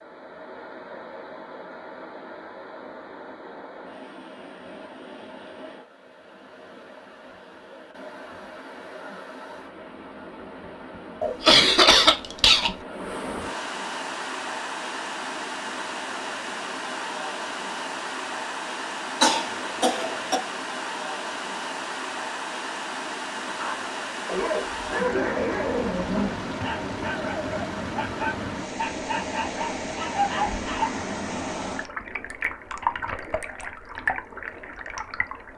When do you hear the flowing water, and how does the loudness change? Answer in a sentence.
The flowing water can be heard from 0.0 to 35.5 s, getting louder.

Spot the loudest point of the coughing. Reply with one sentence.
The loudest moment of the coughing is at 12 seconds.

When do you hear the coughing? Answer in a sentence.
The coughing can be heard from 11.2 to 12.8 s and from 19.2 to 20.4 s.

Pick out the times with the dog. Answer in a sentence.
You can hear the dog from 23.4 to 30.9 s.